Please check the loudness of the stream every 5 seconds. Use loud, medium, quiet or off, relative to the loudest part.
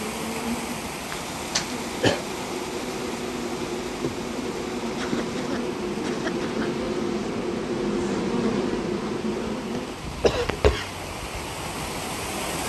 loud, medium, loud.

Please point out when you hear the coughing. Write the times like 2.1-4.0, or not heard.
1.1-2.2, 5.0-6.7, 10.2-10.9.